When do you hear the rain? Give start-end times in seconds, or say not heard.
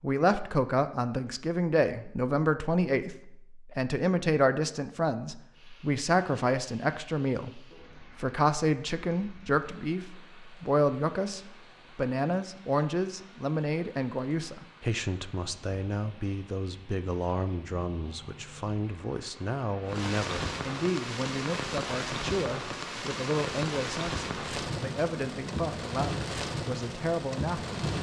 5.5-27.9.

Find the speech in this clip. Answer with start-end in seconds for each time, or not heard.
0.0-27.9.